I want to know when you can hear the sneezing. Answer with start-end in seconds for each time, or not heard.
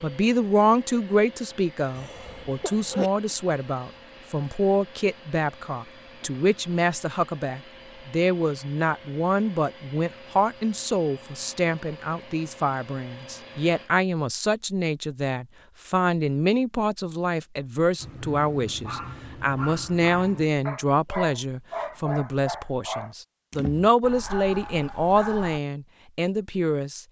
1.9-3.1.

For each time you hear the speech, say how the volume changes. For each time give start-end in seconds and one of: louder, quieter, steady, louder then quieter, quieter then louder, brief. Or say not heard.
0.0-27.0 steady.